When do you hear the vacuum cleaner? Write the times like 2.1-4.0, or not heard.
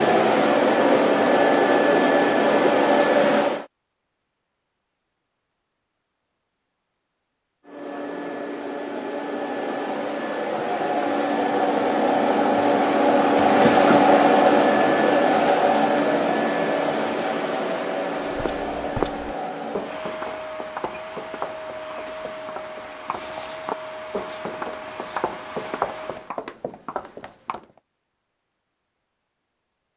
0.0-3.6, 7.7-26.3.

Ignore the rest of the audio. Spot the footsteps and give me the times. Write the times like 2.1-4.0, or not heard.
18.3-27.6.